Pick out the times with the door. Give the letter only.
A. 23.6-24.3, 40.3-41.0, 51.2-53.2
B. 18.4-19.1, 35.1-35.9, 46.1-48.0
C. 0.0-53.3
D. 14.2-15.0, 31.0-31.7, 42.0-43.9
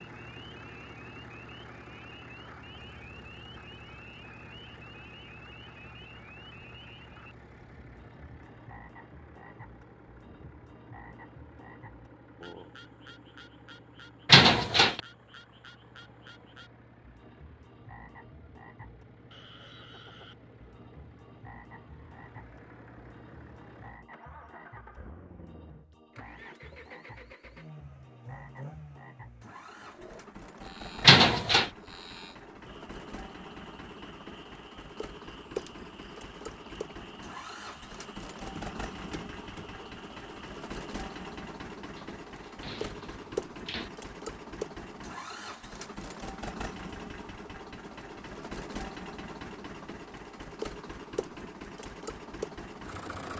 D.